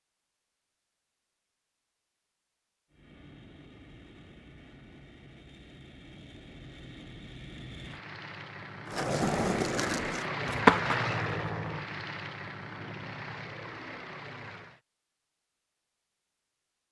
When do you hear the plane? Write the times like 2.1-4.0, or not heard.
2.9-14.8.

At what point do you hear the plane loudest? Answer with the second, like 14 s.
11 s.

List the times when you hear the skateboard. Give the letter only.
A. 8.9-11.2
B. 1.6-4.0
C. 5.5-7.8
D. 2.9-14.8
A.